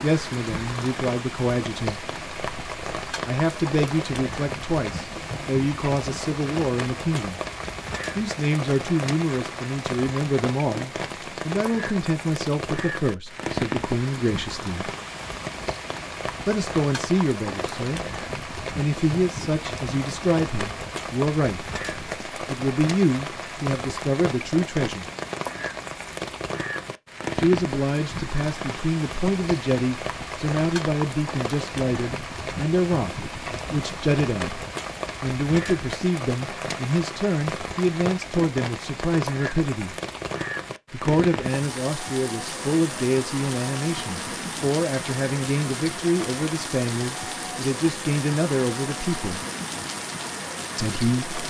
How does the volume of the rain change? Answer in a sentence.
The loudness of the rain stays about the same.